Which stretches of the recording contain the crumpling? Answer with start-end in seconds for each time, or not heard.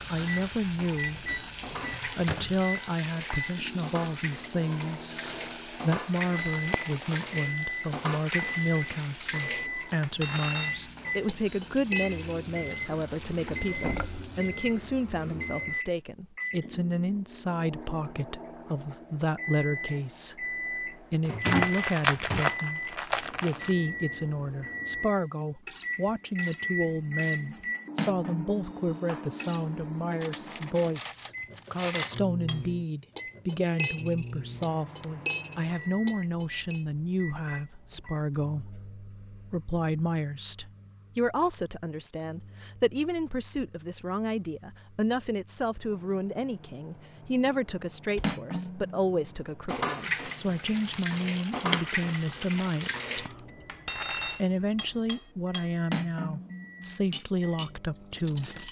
6.2-7.3, 21.4-23.8, 50.7-53.4.